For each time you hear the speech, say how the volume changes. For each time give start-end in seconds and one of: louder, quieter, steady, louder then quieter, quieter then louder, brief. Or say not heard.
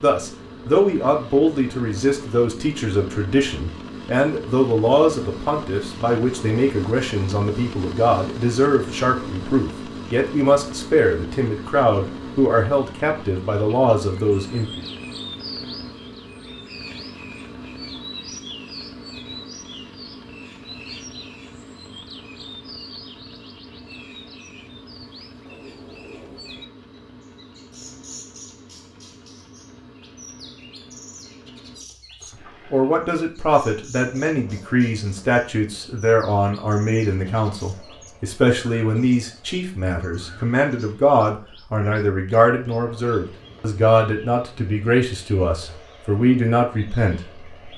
0.0-14.8 steady
32.7-47.5 steady.